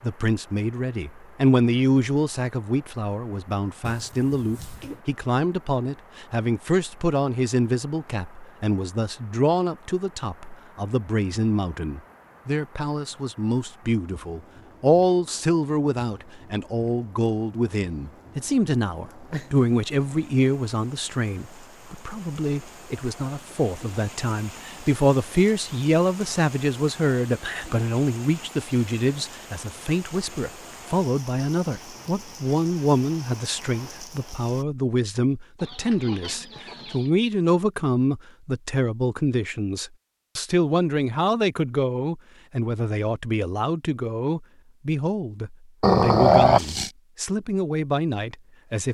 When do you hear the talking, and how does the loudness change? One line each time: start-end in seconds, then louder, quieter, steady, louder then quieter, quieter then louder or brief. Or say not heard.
0.0-48.8 steady.